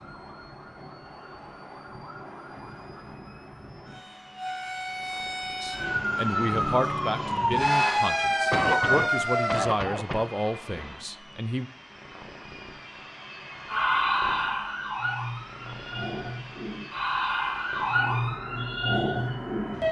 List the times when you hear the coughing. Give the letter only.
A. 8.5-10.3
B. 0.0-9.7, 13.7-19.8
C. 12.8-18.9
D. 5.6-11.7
A.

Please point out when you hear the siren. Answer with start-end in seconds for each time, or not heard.
0.0-9.7, 13.7-19.8.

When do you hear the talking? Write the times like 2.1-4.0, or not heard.
5.6-11.7.